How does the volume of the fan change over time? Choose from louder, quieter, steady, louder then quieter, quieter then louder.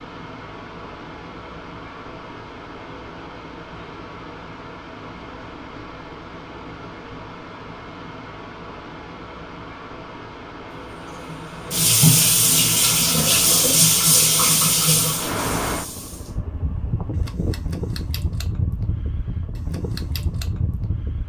louder.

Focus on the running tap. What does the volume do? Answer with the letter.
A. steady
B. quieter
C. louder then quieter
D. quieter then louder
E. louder
B.